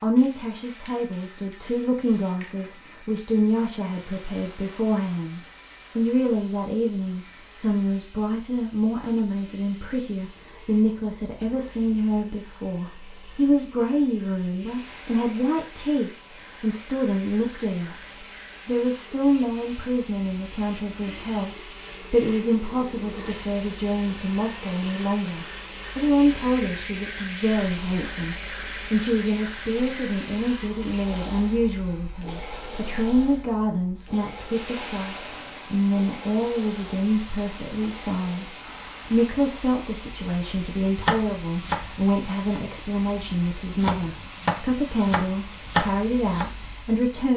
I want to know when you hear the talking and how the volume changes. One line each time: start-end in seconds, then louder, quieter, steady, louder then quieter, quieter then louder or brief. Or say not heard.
0.0-47.3 steady.